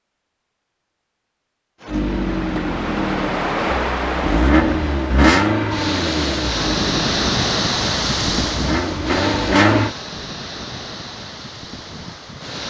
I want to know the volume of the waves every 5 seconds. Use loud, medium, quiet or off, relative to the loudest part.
loud, loud, medium.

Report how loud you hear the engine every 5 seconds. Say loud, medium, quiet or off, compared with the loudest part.
loud, loud, off.